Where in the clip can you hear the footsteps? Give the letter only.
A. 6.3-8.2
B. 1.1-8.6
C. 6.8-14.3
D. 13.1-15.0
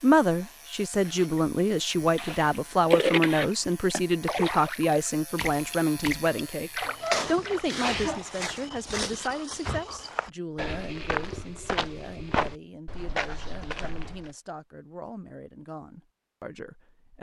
C.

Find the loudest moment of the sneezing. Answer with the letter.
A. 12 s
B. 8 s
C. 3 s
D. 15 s
B.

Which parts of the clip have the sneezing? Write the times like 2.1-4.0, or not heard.
6.3-8.2.